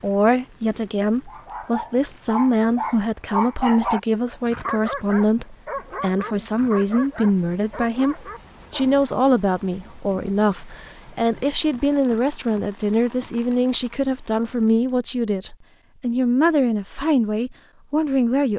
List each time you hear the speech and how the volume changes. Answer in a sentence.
The speech can be heard from 0.0 to 18.5 s, at a steady volume.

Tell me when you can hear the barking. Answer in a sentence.
You can hear the barking from 1.2 to 9.1 s.